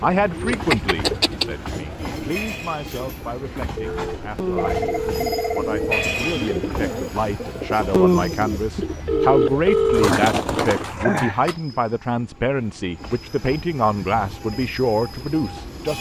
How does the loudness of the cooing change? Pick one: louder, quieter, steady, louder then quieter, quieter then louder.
quieter then louder.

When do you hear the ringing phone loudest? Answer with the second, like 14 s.
10 s.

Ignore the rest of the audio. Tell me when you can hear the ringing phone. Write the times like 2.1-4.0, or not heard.
3.8-6.0, 8.5-10.2.